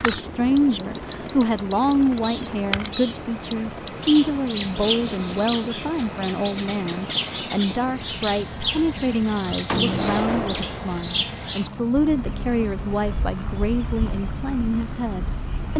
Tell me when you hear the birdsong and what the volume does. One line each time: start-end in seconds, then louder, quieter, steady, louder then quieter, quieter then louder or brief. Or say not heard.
0.0-15.7 quieter.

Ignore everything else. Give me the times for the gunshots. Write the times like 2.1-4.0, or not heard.
9.7-11.0.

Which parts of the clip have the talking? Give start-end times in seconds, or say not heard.
0.0-15.7.